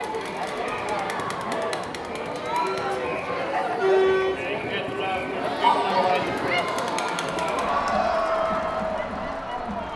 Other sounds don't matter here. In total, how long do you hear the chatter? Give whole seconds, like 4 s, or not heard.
10 s.